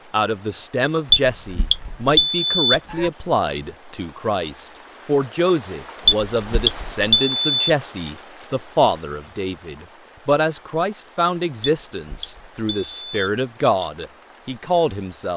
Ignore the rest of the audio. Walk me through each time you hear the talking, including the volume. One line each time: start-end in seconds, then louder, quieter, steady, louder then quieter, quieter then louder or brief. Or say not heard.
0.1-15.3 steady.